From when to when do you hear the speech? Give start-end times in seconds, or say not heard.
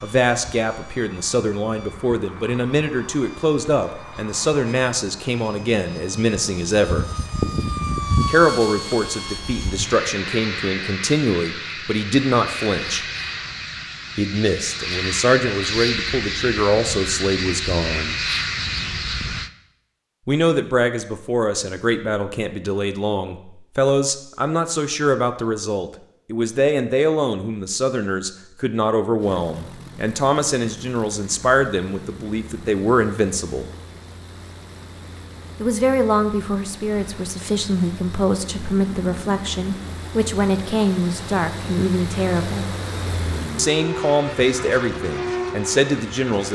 0.0-7.0, 8.2-13.1, 14.2-18.1, 20.2-33.6, 35.6-42.7, 43.5-46.5.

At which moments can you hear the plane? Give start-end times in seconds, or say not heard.
0.0-19.5, 29.1-46.5.